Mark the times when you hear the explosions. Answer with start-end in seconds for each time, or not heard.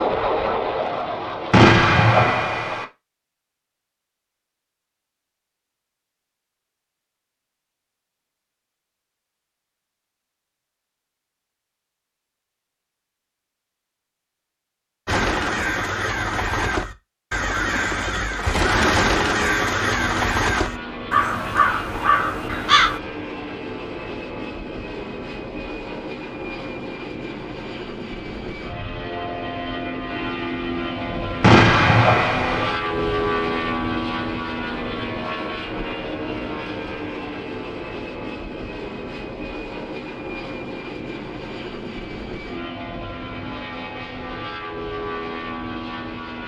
1.5-2.9, 31.4-32.8.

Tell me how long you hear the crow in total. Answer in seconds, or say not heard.
8 s.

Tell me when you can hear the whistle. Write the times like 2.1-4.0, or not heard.
not heard.